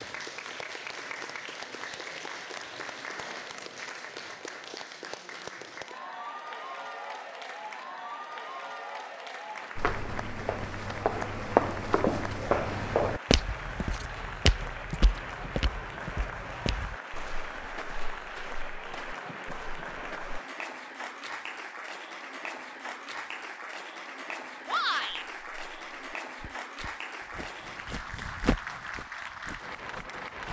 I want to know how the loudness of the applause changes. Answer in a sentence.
The loudness of the applause stays about the same.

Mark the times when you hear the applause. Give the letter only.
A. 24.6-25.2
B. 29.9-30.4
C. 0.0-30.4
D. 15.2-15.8
C.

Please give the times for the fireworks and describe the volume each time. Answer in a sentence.
You can't hear the fireworks here.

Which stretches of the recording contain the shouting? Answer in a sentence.
You can hear the shouting from 24.6 to 25.2 s.